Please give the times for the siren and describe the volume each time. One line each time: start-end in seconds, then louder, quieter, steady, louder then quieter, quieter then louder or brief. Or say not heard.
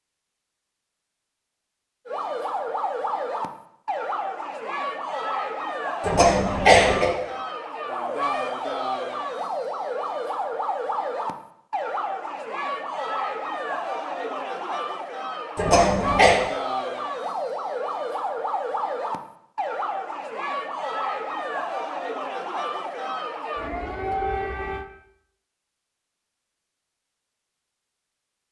2.0-24.9 steady.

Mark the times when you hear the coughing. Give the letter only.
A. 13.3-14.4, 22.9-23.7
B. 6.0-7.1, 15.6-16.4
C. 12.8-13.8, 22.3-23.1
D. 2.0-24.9
B.